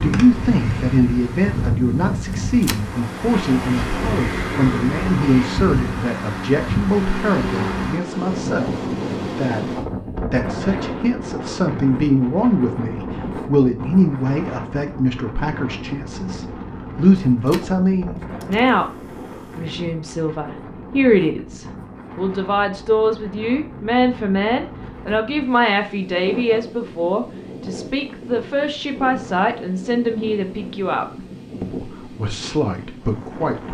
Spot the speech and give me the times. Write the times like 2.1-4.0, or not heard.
0.0-18.9, 19.6-33.6.